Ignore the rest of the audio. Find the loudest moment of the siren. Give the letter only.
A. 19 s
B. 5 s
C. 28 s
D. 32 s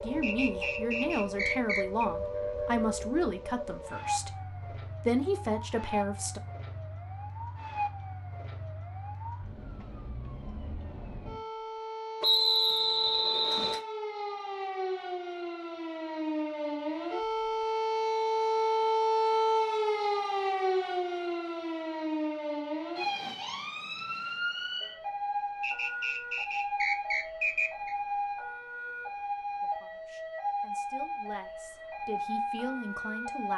A.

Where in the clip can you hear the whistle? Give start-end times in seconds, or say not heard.
0.2-2.0, 12.2-13.8, 25.6-27.9.